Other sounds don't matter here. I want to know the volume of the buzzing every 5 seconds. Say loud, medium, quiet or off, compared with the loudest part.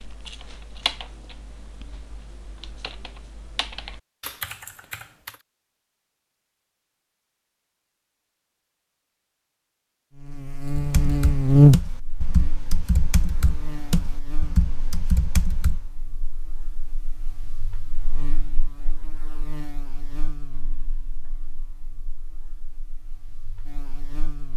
off, off, loud, quiet, quiet.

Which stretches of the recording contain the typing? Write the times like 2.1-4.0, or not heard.
0.0-5.4, 10.8-15.8.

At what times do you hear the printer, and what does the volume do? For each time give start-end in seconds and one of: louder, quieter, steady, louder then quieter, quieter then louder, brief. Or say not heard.
not heard.